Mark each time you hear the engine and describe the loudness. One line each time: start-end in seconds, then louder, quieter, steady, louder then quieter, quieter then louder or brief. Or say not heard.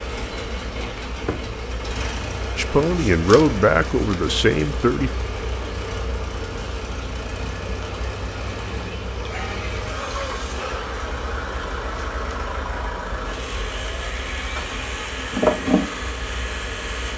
0.0-17.1 steady.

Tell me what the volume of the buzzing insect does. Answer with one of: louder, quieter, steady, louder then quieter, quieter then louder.
louder.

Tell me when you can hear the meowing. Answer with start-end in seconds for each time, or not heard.
9.1-10.9.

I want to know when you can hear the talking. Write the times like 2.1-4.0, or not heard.
2.5-5.1.